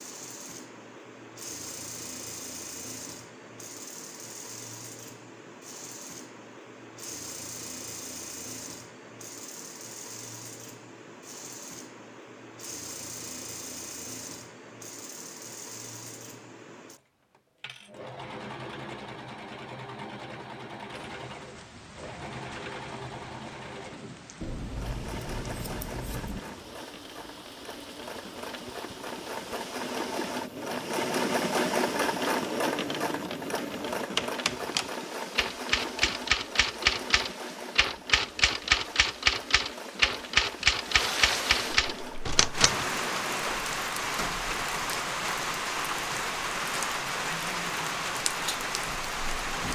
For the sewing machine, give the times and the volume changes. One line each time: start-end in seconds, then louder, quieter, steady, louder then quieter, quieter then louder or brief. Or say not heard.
0.0-43.6 louder then quieter.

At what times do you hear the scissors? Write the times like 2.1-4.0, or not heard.
24.4-26.4.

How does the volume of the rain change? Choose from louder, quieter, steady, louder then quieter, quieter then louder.
louder.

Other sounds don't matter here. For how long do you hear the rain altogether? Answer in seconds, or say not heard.
29 s.